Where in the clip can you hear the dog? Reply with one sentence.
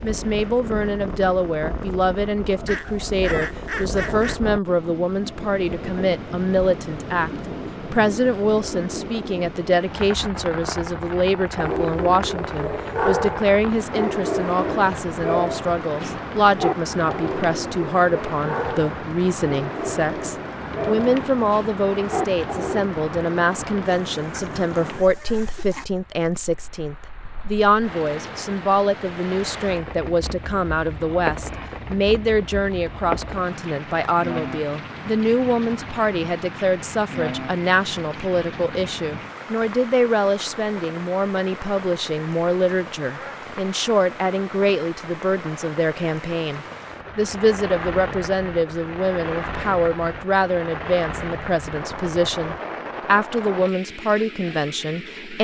The dog can be heard from 11.6 to 22.9 s.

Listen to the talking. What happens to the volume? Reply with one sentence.
The loudness of the talking stays about the same.